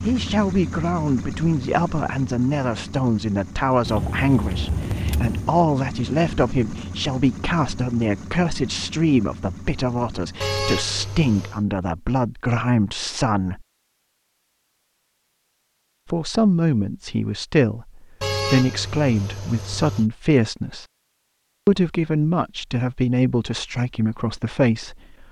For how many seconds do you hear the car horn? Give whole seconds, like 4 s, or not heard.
5 s.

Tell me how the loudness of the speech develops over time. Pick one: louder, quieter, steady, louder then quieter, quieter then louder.
steady.